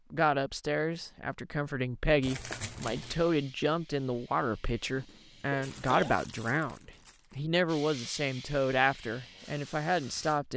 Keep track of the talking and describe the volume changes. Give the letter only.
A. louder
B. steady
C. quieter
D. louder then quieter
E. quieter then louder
B.